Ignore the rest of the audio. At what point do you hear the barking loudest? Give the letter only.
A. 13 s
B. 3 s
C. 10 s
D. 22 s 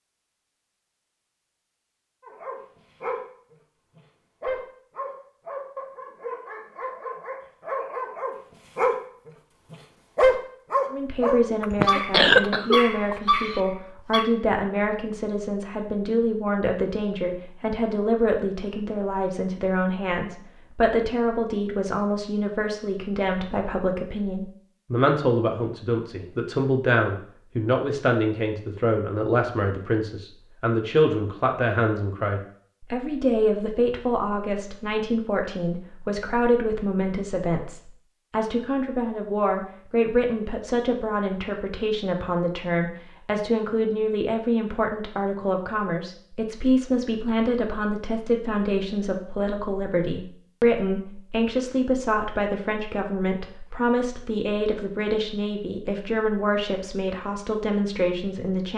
C.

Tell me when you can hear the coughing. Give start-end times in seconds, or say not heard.
11.6-13.6.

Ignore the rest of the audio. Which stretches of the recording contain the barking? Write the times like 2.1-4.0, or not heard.
2.2-3.2, 4.0-8.9, 9.7-14.2.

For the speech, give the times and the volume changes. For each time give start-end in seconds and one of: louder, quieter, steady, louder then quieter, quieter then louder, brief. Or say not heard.
10.9-58.7 steady.